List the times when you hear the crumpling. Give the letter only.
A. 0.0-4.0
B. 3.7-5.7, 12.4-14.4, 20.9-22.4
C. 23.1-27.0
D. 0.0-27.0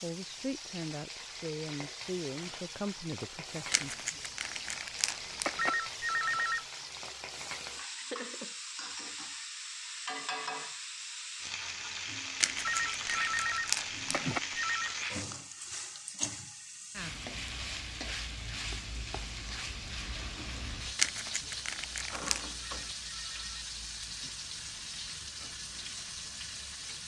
B.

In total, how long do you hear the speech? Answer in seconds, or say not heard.
4 s.